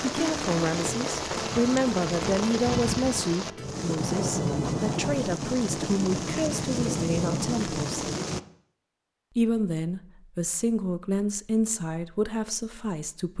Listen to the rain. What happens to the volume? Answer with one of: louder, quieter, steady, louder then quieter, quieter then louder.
steady.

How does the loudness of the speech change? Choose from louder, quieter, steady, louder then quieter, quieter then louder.
steady.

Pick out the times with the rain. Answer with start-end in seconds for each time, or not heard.
0.0-8.4.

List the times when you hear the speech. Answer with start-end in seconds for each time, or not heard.
0.0-8.1, 9.3-13.3.